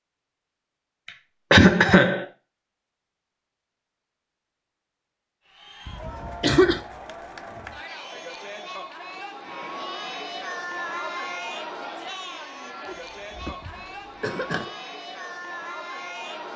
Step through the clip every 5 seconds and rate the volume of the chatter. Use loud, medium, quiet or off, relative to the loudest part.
off, loud, loud, loud.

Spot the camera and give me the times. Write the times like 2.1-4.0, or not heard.
not heard.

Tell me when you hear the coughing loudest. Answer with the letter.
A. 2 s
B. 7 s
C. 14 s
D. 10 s
A.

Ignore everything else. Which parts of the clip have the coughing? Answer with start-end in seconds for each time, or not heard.
1.5-2.2, 5.8-6.8, 12.8-14.7.